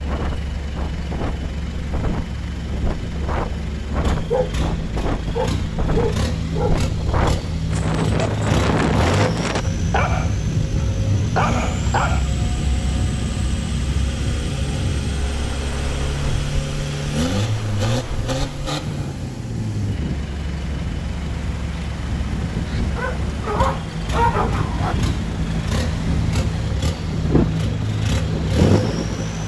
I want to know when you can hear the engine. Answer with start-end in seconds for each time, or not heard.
0.0-29.4.